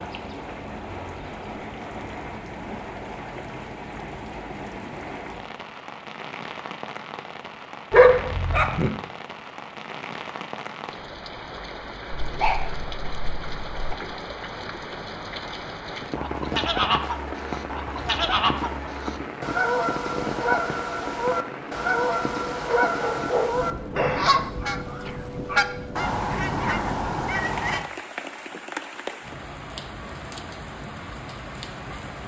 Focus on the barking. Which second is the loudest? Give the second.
8 s.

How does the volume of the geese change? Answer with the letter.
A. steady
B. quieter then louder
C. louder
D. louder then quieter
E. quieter
A.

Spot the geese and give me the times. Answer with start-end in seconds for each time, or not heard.
16.1-27.9.